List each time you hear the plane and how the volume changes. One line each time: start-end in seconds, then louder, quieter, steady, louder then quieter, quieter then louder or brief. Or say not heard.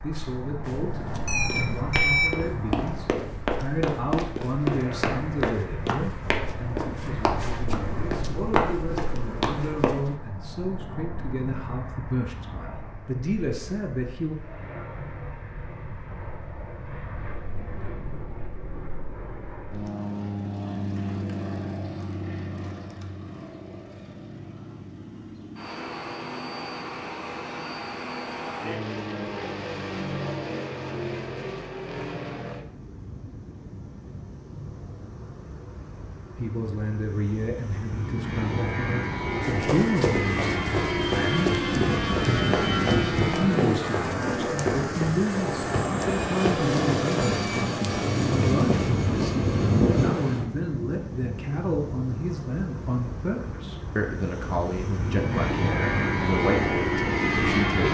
0.0-57.9 louder.